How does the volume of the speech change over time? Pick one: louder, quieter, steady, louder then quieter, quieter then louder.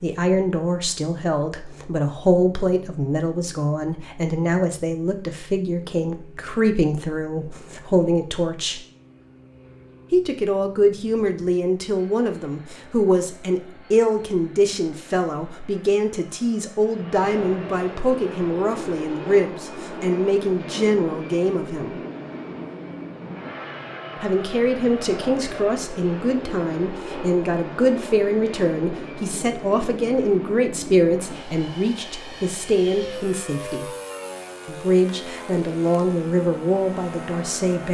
steady.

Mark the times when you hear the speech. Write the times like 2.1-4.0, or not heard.
0.0-8.8, 10.1-22.0, 24.2-33.9, 34.6-37.9.